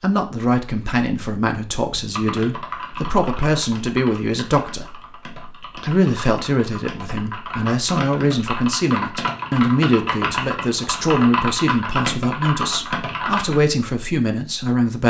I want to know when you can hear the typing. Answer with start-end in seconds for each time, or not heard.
1.9-13.6.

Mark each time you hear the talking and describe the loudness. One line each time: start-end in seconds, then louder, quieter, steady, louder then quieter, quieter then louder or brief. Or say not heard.
0.0-15.0 steady.